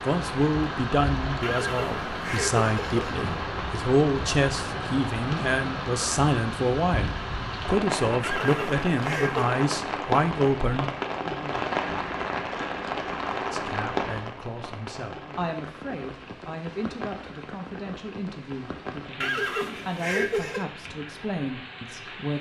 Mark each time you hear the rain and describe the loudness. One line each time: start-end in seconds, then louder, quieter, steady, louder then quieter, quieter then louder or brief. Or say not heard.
0.0-22.3 quieter.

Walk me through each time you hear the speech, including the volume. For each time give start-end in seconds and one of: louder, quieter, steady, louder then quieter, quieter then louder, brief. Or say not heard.
0.0-10.9 steady
13.5-22.3 steady.